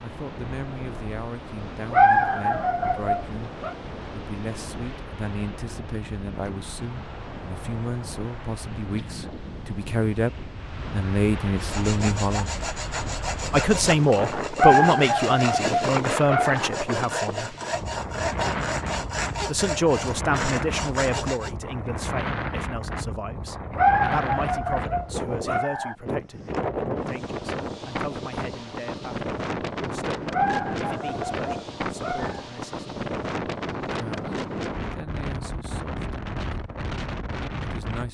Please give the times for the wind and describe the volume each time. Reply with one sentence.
You can hear the wind from 0.0 to 38.0 s, getting louder.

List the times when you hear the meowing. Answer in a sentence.
You can't hear the meowing here.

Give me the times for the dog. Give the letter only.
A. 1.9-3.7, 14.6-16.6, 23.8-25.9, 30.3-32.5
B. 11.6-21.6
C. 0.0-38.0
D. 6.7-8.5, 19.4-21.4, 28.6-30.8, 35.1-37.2
A.